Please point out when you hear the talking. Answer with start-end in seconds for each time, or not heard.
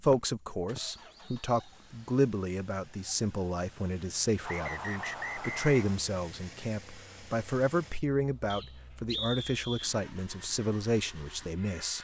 0.0-11.9.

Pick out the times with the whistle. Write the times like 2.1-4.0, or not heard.
0.8-1.7, 4.5-6.0, 8.5-9.9.